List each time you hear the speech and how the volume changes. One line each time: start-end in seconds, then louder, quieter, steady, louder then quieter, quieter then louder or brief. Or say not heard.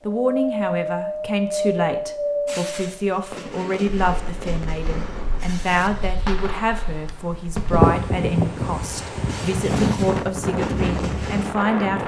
0.1-12.0 steady.